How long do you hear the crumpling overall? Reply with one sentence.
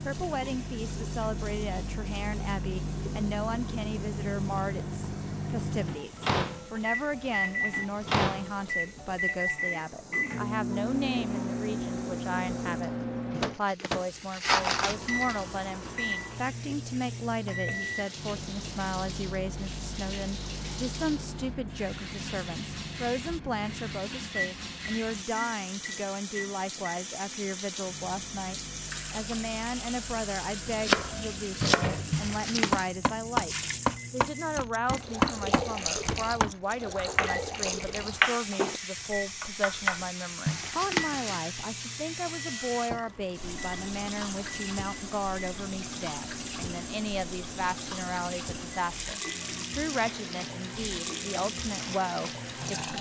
You can hear the crumpling for 4 seconds altogether.